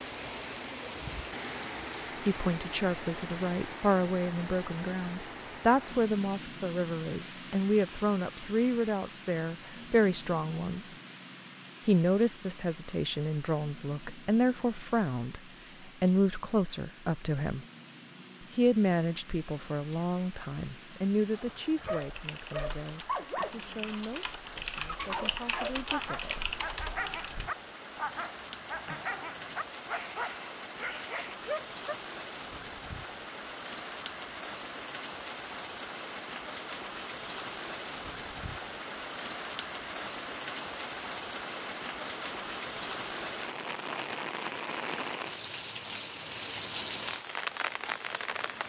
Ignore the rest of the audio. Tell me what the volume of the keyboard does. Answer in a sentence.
The loudness of the keyboard goes up.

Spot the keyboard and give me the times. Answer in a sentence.
You can hear the keyboard from 21.8 to 27.5 s.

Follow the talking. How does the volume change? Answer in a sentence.
The loudness of the talking goes down.